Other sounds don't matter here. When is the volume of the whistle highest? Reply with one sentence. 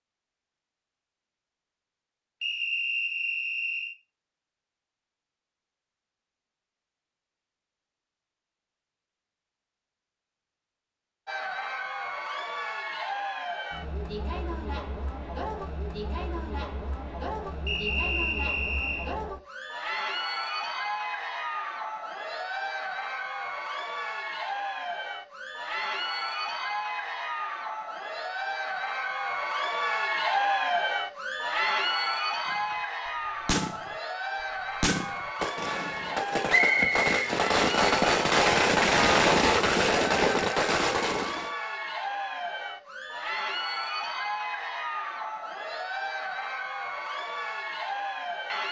The loudest moment of the whistle is at 37 seconds.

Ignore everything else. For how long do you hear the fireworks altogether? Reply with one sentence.
You can hear the fireworks for 9 seconds altogether.